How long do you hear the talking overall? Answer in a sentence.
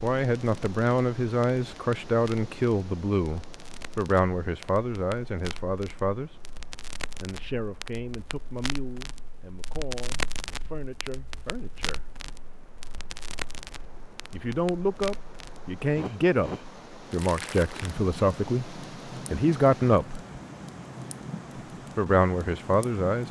The talking can be heard for 18 seconds in total.